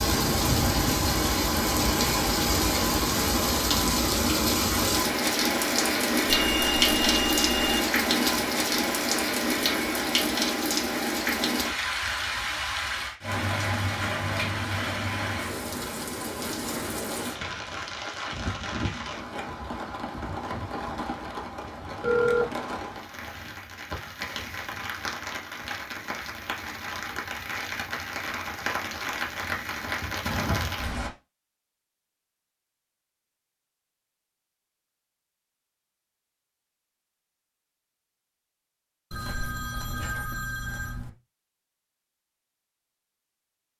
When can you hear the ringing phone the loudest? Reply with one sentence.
The volume of the ringing phone peaks at 22 seconds.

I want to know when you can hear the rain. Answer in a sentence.
You can hear the rain from 0.0 to 31.1 s.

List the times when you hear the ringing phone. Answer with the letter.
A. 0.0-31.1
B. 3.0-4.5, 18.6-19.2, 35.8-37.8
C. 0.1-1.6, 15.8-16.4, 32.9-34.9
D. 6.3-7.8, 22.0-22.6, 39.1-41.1
D.